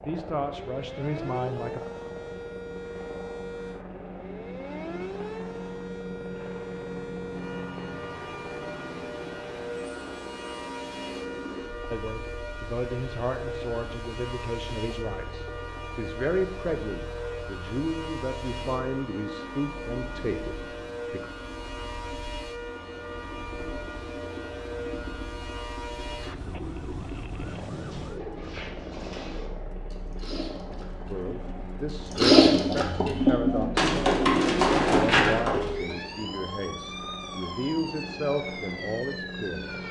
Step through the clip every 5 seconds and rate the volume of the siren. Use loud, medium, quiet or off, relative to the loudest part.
loud, loud, loud, loud, loud, loud, quiet, loud.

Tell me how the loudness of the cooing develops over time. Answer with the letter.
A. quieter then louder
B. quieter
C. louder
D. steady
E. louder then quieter
C.